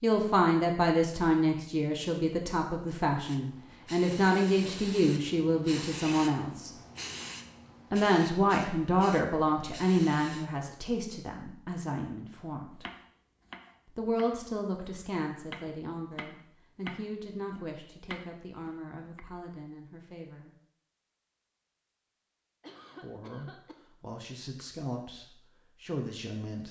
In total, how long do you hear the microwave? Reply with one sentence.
You can't hear the microwave here.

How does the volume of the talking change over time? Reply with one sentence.
The volume of the talking goes down.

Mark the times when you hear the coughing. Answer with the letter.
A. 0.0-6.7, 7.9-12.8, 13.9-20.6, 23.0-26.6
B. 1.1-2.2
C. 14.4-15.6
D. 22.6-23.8
D.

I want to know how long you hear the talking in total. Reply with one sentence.
The talking can be heard for 22 seconds in total.